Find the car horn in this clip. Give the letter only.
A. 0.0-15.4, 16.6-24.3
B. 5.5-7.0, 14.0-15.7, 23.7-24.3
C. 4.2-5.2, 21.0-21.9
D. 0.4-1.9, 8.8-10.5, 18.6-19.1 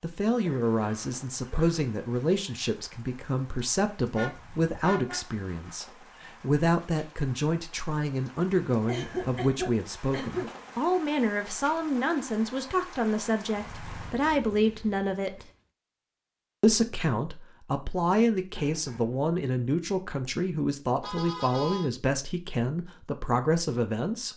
C.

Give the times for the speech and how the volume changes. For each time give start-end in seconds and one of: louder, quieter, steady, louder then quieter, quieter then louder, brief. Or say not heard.
0.0-15.4 steady
16.6-24.3 steady.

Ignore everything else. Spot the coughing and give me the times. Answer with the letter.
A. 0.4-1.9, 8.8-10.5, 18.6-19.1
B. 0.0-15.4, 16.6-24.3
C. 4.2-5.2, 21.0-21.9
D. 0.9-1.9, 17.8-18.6
A.